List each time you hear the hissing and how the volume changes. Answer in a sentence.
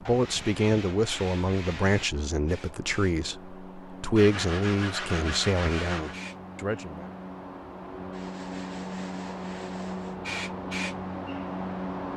You can hear the hissing from 0.0 to 12.1 s, getting louder.